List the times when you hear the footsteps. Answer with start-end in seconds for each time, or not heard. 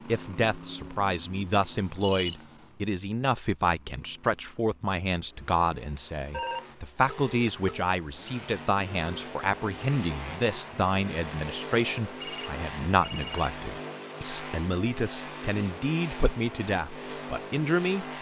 not heard.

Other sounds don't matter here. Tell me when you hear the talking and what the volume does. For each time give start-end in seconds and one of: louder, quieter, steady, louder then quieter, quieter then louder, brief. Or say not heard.
0.1-18.1 steady.